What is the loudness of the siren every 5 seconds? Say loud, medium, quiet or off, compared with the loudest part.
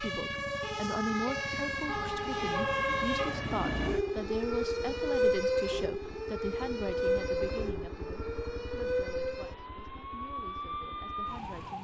loud, loud, medium.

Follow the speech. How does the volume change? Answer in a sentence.
The volume of the speech goes down.